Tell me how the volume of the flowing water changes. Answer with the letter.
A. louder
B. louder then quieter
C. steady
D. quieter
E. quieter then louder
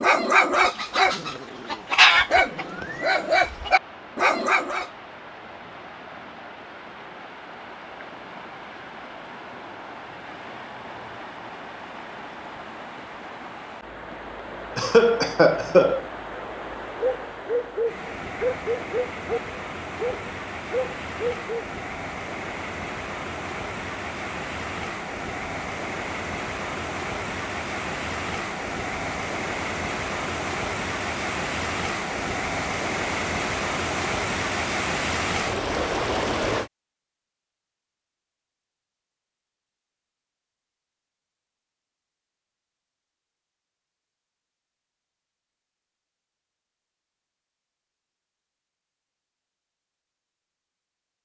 A.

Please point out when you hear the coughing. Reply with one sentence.
The coughing can be heard from 14.8 to 16.1 s.